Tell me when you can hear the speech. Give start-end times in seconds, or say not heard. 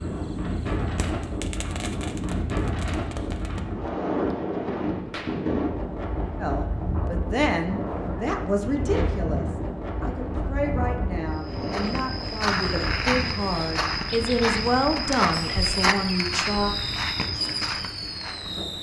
6.3-16.8.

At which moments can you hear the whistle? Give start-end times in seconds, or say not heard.
not heard.